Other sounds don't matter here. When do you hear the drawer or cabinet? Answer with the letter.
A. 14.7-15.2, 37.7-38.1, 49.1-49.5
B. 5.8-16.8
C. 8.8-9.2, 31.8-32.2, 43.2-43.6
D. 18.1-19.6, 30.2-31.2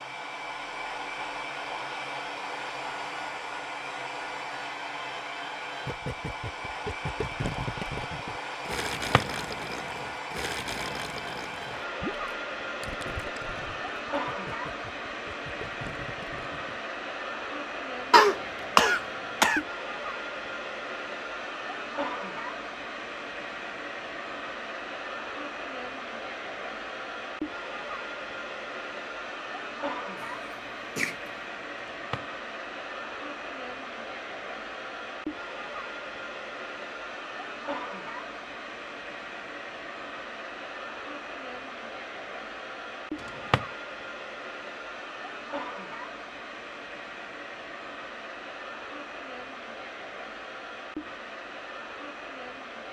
C.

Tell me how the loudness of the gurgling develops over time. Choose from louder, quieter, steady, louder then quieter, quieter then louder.
quieter.